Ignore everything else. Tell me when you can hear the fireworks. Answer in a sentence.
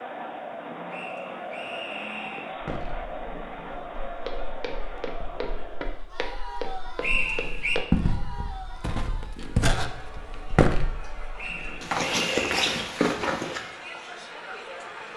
The fireworks can't be heard in this clip.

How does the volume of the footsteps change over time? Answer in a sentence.
The volume of the footsteps goes up.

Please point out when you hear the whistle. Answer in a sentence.
The whistle can be heard from 0.9 to 2.5 s, from 7.0 to 7.8 s and from 11.3 to 12.5 s.